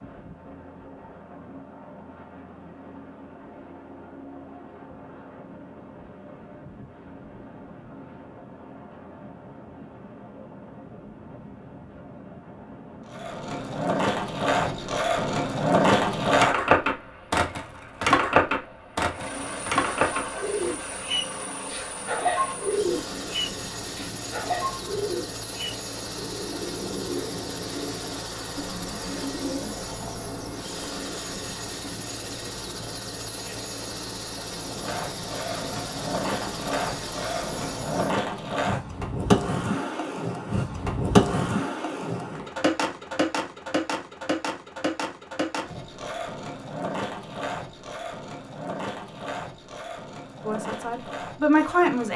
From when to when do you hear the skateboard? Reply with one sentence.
The skateboard can be heard from 13.1 to 20.8 s and from 34.6 to 52.1 s.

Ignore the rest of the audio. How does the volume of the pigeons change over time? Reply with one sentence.
The loudness of the pigeons goes down.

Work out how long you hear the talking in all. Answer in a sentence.
You can hear the talking for 2 seconds altogether.